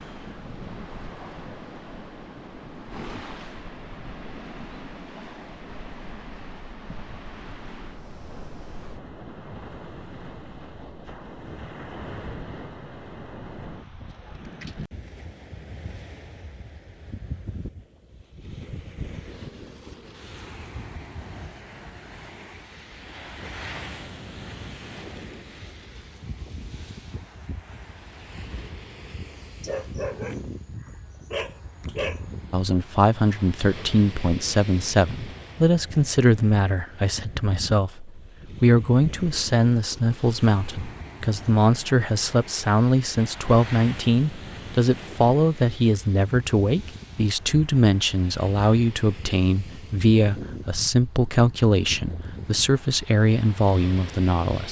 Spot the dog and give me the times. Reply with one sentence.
You can hear the dog from 29.6 to 32.2 s.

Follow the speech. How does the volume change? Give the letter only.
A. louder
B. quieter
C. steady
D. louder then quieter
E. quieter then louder
C.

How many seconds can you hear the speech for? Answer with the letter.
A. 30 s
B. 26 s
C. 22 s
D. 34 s
C.